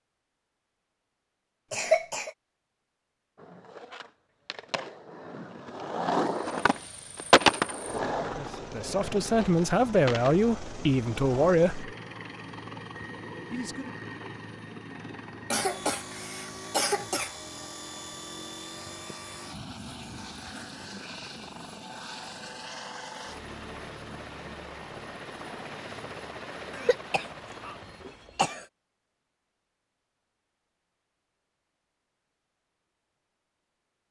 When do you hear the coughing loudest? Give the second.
2 s.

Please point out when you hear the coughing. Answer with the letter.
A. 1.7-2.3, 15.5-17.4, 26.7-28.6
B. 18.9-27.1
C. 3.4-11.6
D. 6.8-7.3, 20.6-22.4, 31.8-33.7
A.